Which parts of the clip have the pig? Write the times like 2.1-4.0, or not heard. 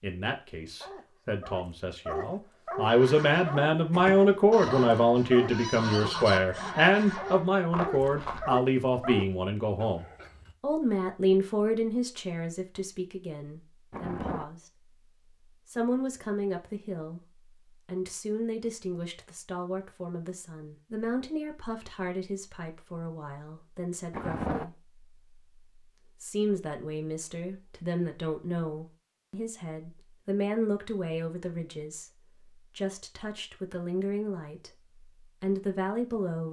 not heard.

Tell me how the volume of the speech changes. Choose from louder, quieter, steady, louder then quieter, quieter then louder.
quieter.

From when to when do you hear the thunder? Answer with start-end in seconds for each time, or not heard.
13.9-14.4, 24.1-24.6.